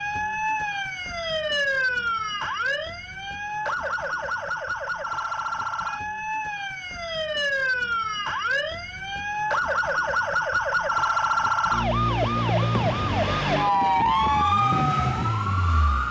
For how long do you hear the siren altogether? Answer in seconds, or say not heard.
16 s.